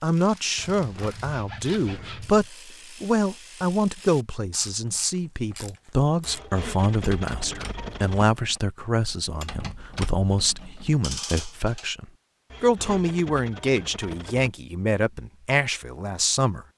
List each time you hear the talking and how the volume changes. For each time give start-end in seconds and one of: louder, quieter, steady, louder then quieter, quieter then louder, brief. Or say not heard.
0.0-16.6 steady.